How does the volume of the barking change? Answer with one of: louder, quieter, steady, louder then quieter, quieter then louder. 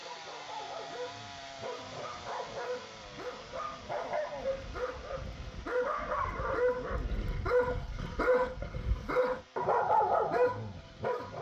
louder.